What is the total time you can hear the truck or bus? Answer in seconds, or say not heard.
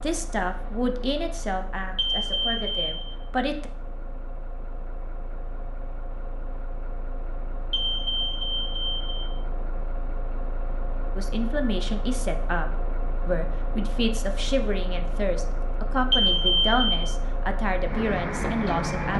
19 s.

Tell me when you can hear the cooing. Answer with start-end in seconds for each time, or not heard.
not heard.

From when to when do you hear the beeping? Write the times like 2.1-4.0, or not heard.
1.9-3.1, 7.7-9.3, 16.1-17.0.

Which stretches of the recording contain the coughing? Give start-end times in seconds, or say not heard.
not heard.